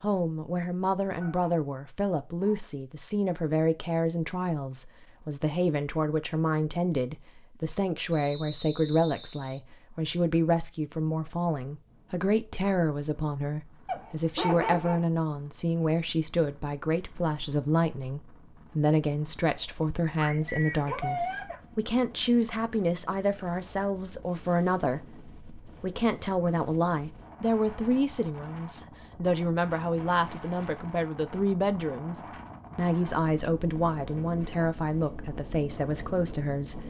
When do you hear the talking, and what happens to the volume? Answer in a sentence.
The talking can be heard from 0.0 to 36.8 s, at a steady volume.